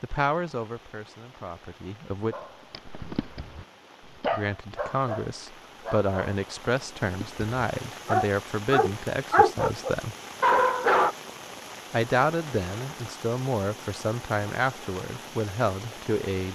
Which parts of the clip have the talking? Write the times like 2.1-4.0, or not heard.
0.0-2.4, 4.3-10.2, 11.9-16.4.